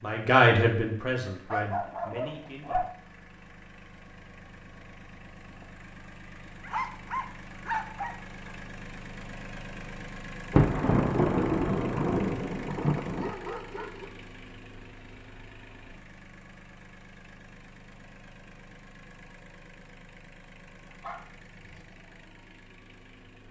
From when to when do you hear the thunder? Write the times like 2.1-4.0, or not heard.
10.5-13.3.